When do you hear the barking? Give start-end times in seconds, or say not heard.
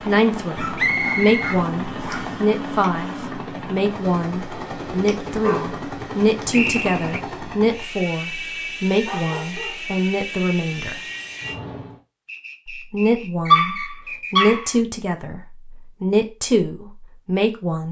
0.6-2.4, 4.5-6.8, 9.0-10.0, 13.5-14.8.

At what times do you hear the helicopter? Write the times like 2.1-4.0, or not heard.
0.0-12.0.